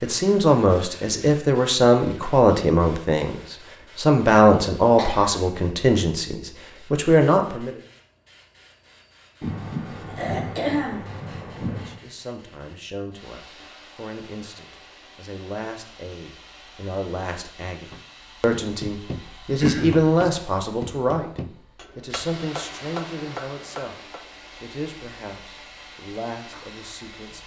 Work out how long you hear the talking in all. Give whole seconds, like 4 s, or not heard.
23 s.